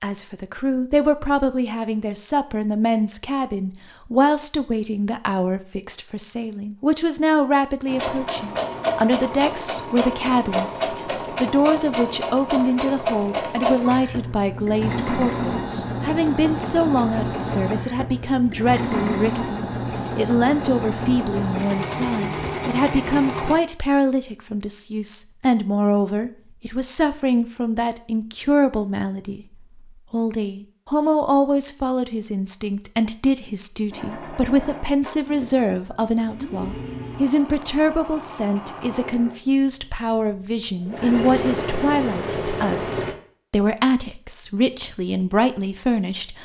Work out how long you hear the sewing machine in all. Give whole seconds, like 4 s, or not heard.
25 s.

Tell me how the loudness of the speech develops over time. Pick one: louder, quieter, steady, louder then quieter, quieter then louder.
steady.